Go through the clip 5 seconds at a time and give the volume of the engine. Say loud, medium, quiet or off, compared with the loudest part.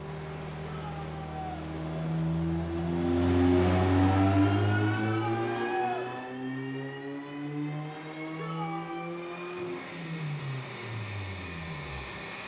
loud, medium, medium.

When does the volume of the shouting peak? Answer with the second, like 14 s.
6 s.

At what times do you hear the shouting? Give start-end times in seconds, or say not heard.
0.7-1.7, 5.0-6.1, 8.3-9.1.